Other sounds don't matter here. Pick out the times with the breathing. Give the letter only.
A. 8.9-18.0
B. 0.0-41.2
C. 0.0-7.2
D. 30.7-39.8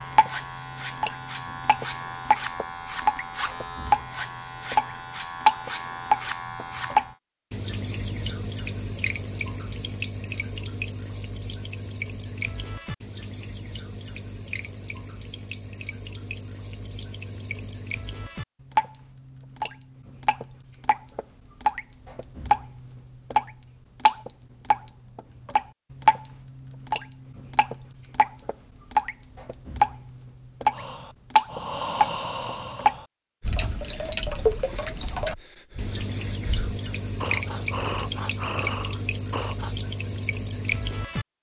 D.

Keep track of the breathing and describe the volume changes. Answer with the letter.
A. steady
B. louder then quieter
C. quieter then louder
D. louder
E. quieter
C.